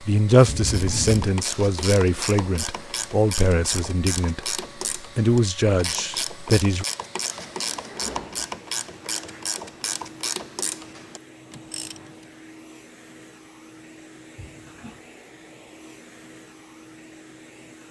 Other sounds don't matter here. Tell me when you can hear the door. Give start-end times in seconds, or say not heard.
0.5-1.3, 7.3-8.6, 14.3-15.1.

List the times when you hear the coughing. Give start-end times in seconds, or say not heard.
not heard.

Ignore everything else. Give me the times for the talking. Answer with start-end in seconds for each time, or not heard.
0.0-6.8.